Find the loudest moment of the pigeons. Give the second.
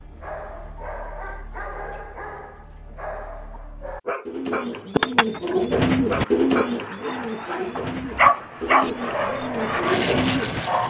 6 s.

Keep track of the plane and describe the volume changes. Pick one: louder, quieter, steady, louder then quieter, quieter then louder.
louder.